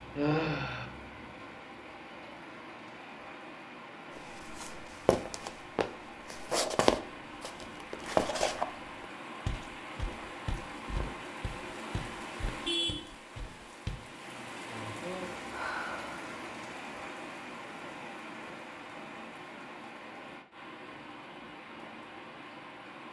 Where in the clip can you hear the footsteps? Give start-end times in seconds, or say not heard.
4.2-14.1.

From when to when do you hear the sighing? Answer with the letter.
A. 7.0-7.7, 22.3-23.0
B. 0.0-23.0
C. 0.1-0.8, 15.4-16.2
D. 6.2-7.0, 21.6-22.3
C.